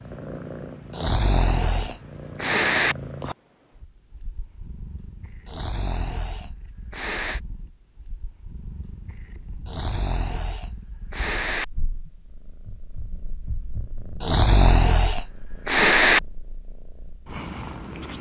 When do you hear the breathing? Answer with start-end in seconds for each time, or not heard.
0.9-3.0, 5.5-7.4, 9.7-11.7, 14.2-16.2.